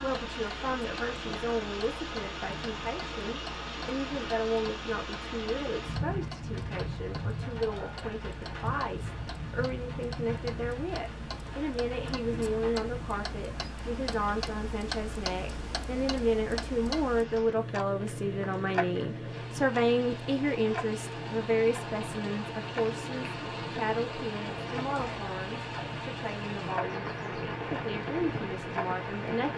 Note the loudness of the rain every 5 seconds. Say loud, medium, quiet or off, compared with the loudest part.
loud, loud, medium, medium, loud, loud.